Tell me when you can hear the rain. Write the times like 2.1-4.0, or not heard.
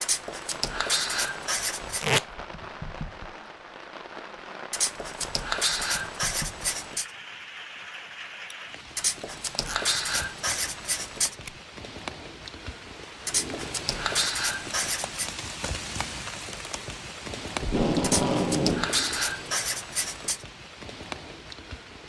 0.0-22.0.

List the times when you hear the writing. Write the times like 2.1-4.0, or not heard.
0.0-2.0, 4.7-7.1, 8.9-11.3, 13.2-15.3, 18.0-20.4.